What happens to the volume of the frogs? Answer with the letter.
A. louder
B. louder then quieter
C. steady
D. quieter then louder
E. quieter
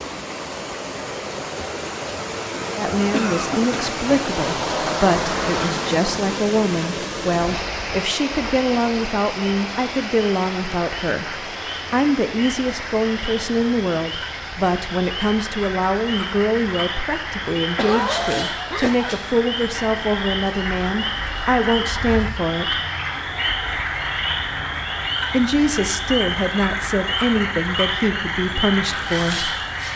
A.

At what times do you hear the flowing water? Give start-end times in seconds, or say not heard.
0.0-29.9.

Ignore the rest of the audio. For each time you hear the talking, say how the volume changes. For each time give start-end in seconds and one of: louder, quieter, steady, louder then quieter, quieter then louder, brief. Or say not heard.
2.8-22.8 steady
25.3-29.6 steady.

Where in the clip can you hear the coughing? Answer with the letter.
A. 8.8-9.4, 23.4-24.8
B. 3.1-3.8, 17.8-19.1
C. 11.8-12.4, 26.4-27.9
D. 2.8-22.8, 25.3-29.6
B.